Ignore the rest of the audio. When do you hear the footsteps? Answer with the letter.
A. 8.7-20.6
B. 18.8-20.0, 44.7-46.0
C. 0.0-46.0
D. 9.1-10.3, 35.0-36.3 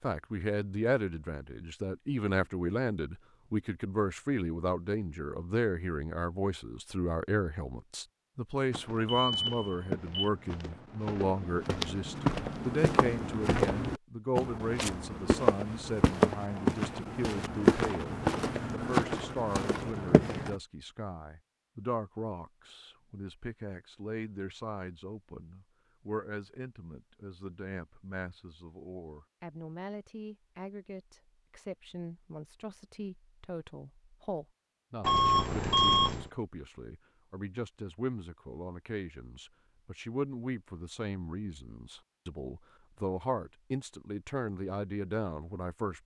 A.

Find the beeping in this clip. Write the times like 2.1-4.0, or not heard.
9.1-10.3, 35.0-36.3.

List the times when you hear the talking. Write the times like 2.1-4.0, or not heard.
0.0-46.0.